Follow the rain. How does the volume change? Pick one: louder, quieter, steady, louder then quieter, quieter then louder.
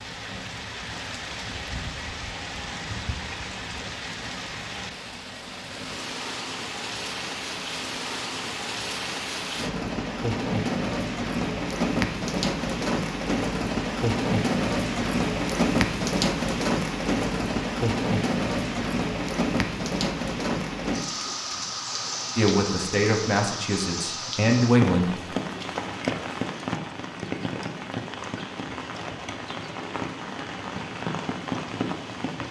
louder then quieter.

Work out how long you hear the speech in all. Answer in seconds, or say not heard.
3 s.